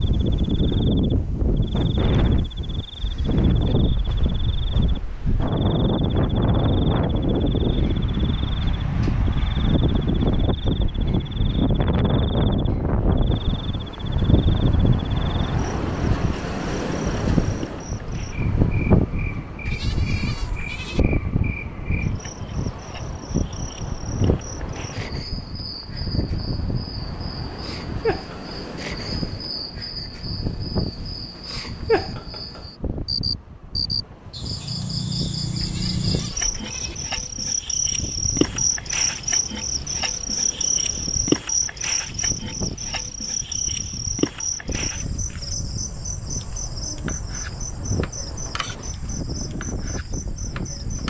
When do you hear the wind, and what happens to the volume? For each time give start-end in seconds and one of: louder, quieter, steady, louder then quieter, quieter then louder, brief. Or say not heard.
0.0-51.0 quieter.